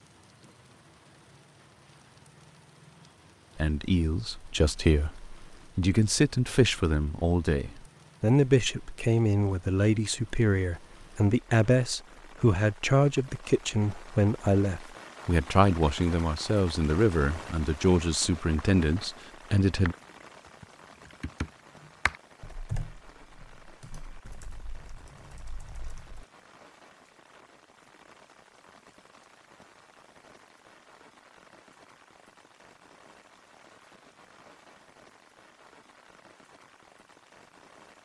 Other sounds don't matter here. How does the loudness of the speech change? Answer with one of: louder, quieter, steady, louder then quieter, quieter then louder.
steady.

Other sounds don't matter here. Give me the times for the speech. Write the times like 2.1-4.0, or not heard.
3.5-19.9.